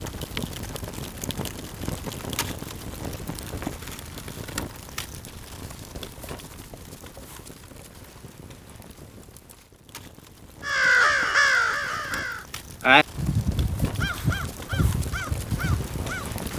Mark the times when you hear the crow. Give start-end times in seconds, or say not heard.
10.7-16.5.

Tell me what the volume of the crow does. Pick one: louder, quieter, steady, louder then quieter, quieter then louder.
quieter.